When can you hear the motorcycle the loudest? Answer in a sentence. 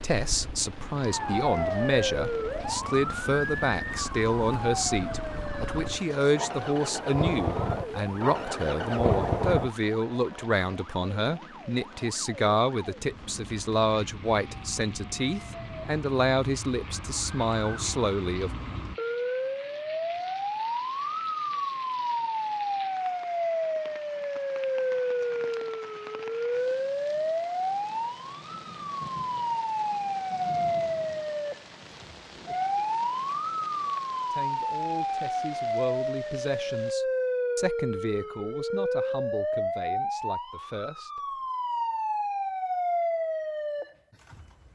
The loudest moment of the motorcycle is at 9 seconds.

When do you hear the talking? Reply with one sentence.
You can hear the talking from 0.0 to 18.5 s and from 34.3 to 41.4 s.